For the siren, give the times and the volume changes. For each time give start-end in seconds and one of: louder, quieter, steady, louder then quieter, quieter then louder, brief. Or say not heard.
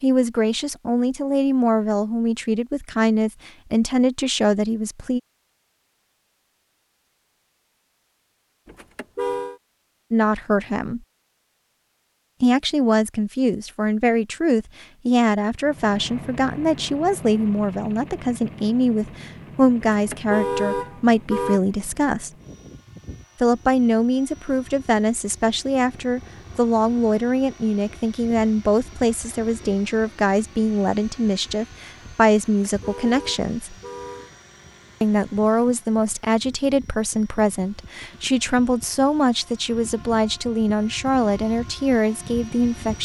not heard.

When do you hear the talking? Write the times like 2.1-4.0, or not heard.
0.0-5.2, 10.1-11.0, 12.4-22.3, 23.4-33.8, 35.0-43.0.